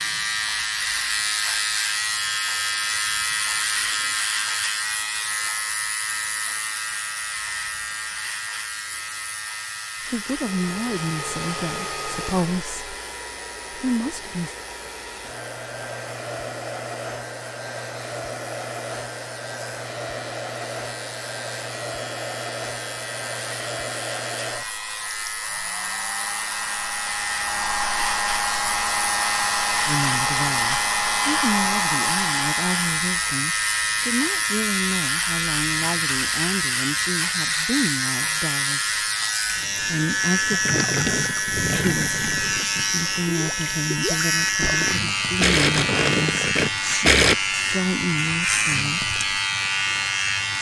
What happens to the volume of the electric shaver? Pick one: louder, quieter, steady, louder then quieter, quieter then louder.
quieter then louder.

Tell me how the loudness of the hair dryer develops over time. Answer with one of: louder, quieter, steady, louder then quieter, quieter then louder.
louder.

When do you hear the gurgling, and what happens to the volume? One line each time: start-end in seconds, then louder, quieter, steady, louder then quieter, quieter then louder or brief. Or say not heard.
40.5-47.4 quieter then louder.